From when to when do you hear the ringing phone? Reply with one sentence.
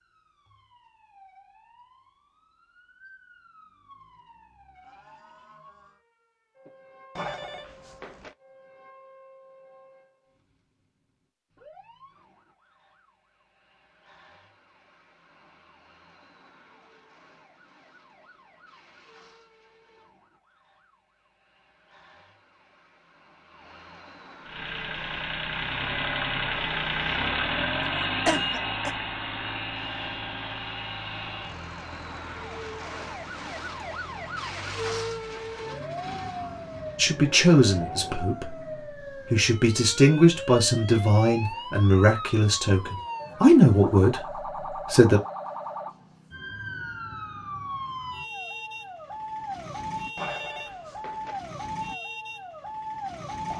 You can hear the ringing phone from 7.2 to 8.3 s and from 50.1 to 51.4 s.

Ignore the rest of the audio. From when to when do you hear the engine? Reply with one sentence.
You can hear the engine from 24.4 to 38.3 s.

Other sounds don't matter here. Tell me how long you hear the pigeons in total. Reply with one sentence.
You can't hear the pigeons here.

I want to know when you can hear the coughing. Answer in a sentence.
You can hear the coughing from 28.2 to 28.9 s.